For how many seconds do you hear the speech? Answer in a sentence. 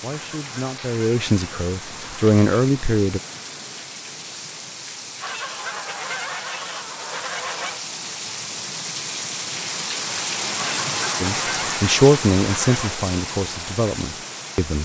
You can hear the speech for 7 seconds altogether.